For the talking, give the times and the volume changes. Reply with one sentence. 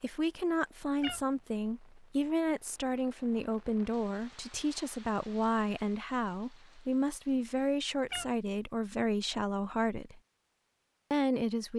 You can hear the talking from 0.0 to 10.2 s, at a steady volume; and briefly from 11.1 to 11.7 s.